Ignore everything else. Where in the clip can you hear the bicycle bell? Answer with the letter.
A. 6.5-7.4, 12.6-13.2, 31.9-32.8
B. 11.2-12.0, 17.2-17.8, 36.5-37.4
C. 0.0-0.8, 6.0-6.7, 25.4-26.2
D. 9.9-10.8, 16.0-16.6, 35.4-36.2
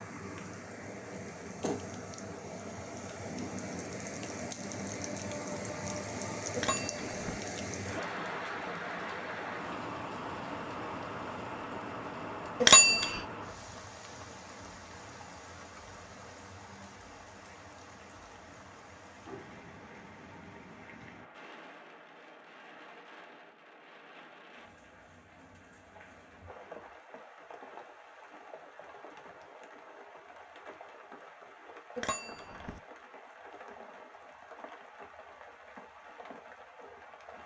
A.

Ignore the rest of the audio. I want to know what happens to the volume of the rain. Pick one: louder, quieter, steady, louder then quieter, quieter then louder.
quieter.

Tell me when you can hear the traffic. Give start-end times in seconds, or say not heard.
not heard.